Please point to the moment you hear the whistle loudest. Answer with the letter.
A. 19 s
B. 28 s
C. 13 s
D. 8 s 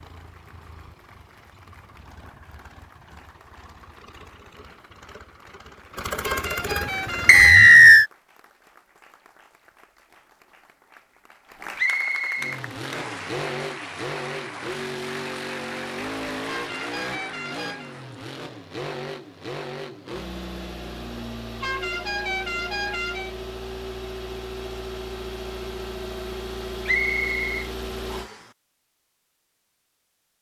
D.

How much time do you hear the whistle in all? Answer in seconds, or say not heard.
4 s.